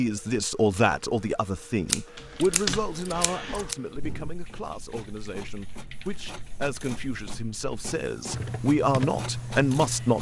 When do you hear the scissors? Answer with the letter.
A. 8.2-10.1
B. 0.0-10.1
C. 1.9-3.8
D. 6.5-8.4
C.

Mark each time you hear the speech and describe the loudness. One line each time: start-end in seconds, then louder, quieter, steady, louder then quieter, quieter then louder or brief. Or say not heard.
0.0-10.1 quieter then louder.